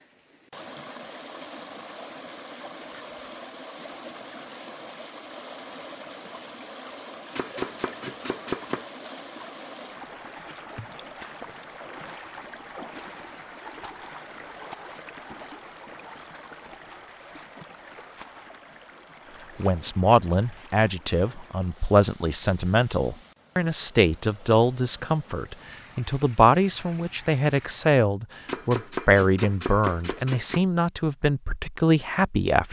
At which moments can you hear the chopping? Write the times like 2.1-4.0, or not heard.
7.3-8.8, 28.4-30.6.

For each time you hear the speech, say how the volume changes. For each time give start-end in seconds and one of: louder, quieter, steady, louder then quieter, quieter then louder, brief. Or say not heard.
19.6-32.6 steady.